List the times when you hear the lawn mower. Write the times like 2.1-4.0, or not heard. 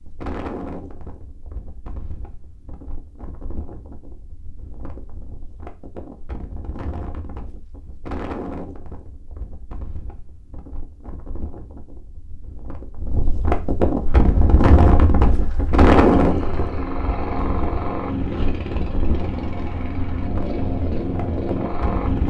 14.1-22.2.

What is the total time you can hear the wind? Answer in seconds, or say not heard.
22 s.